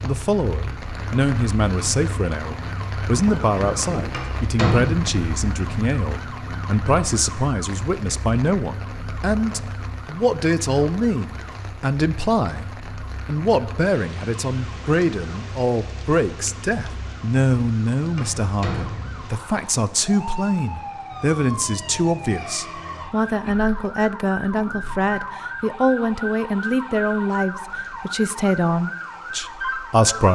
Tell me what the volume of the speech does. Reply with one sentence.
The volume of the speech stays about the same.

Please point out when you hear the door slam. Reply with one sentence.
The door slam can be heard from 4.1 to 5.1 s and from 18.1 to 19.2 s.